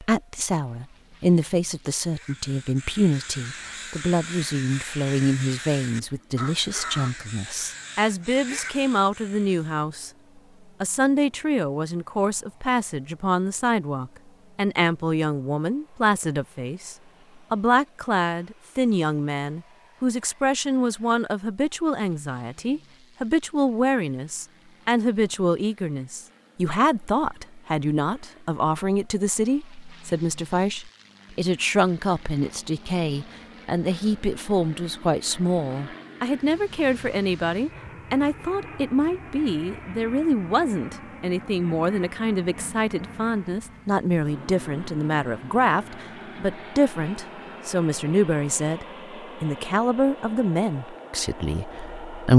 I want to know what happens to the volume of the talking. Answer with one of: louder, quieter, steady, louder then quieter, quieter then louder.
steady.